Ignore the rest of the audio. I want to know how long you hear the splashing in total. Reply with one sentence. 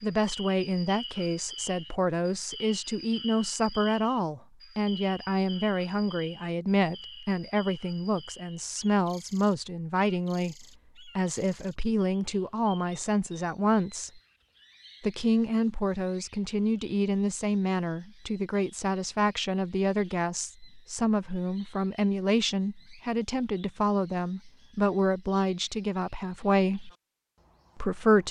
You can't hear the splashing here.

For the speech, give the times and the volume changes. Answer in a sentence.
The speech can be heard from 0.0 to 14.2 s, at a steady volume; from 15.0 to 26.9 s, at a steady volume; and briefly from 27.8 to 28.2 s.